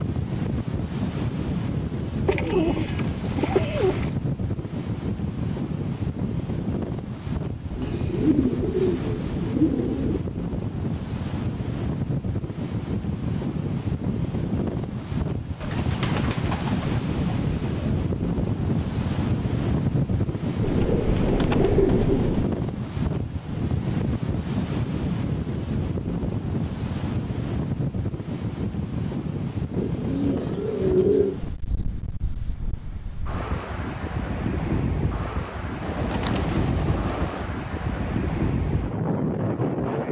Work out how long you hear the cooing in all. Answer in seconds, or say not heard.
12 s.